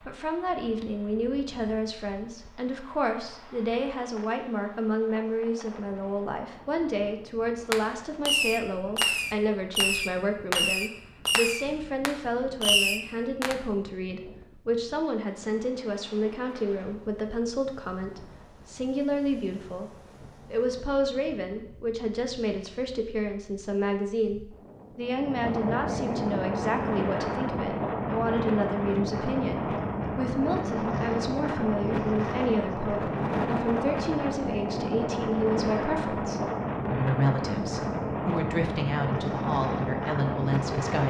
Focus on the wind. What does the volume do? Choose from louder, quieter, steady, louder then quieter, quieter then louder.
louder.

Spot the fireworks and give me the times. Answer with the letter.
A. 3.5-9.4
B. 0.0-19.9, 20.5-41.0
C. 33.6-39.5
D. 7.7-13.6
D.